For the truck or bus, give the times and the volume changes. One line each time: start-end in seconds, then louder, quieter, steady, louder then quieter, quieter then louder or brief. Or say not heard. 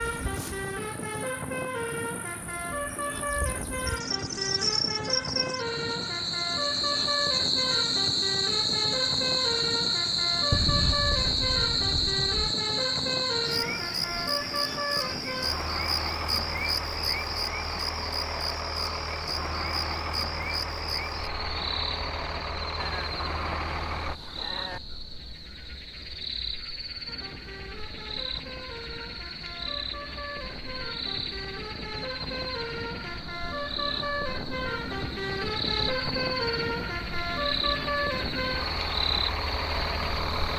0.0-24.2 steady
27.1-40.5 louder.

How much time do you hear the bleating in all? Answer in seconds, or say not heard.
4 s.